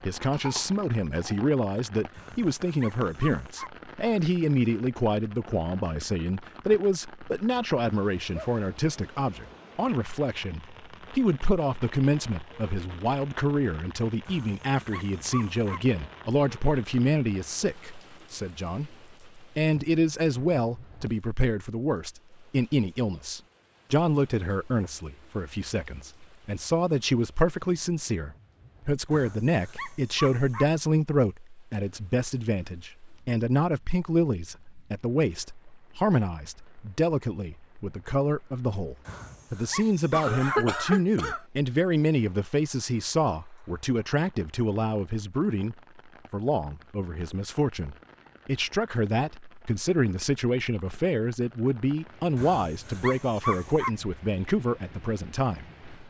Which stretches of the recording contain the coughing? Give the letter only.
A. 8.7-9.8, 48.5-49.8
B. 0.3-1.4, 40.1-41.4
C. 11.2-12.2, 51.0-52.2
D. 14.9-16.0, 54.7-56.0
B.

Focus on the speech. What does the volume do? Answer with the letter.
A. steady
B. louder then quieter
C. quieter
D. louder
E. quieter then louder
A.